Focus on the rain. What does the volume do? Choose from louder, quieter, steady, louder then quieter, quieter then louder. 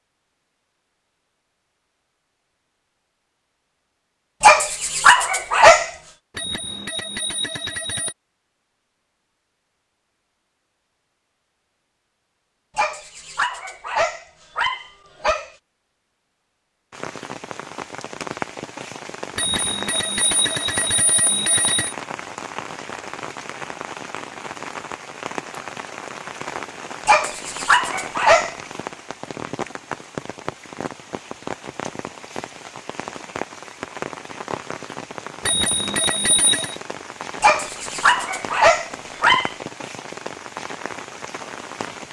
steady.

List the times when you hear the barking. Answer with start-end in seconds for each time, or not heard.
4.4-5.9, 12.8-15.5, 27.1-28.6, 37.4-39.5.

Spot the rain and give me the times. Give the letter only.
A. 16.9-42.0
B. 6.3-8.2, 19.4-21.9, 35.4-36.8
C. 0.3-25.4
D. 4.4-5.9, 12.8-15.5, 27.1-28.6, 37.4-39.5
A.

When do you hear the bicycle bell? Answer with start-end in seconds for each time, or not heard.
6.3-8.2, 19.4-21.9, 35.4-36.8.